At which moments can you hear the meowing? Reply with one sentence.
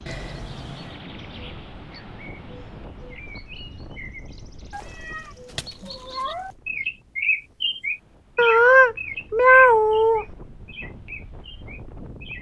The meowing can be heard from 0.1 to 1.0 s, from 4.7 to 6.5 s and from 8.3 to 10.2 s.